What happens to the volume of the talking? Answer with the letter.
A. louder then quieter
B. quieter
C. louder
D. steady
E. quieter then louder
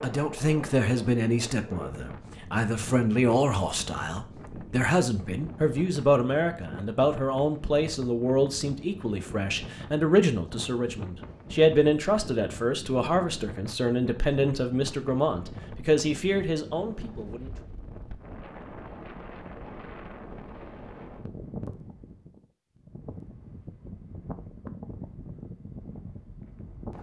D.